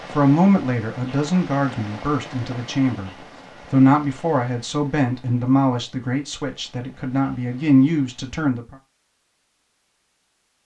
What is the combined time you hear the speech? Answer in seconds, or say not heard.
9 s.